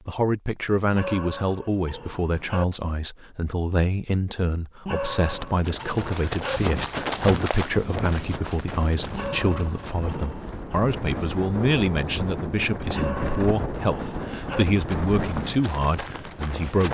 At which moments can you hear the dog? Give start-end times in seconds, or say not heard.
0.9-2.6, 4.8-6.6, 9.1-10.8, 12.9-14.7.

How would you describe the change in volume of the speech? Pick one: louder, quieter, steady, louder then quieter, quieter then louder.
steady.